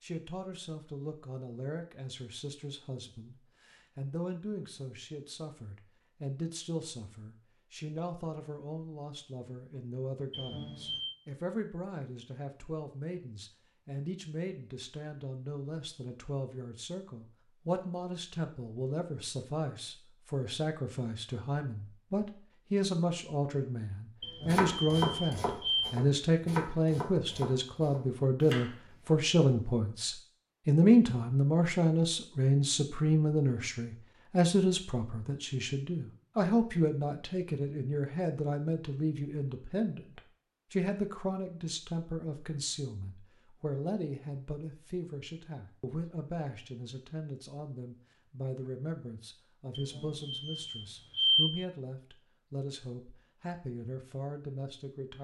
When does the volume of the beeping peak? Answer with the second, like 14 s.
51 s.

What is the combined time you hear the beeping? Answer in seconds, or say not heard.
4 s.